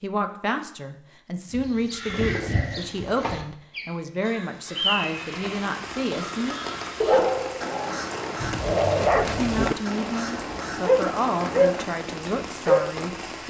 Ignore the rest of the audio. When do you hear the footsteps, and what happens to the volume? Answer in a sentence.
The footsteps can't be heard in this clip.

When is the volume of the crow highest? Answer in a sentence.
The volume of the crow peaks at 5 seconds.